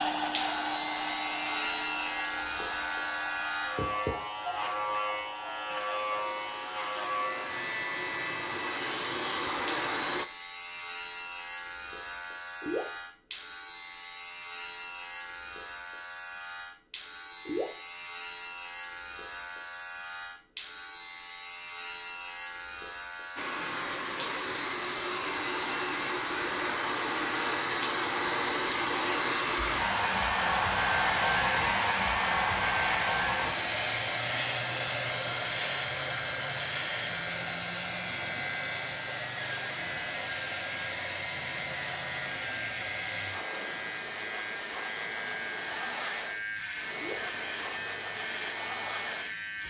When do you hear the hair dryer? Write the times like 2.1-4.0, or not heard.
0.0-10.2, 23.4-49.6.